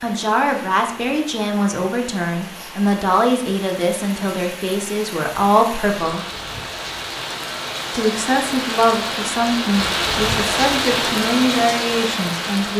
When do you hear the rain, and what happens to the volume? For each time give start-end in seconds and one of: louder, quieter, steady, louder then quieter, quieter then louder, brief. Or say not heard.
0.0-12.7 louder.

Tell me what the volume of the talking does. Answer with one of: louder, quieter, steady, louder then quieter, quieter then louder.
steady.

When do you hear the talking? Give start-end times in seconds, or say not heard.
0.0-6.2, 8.0-12.7.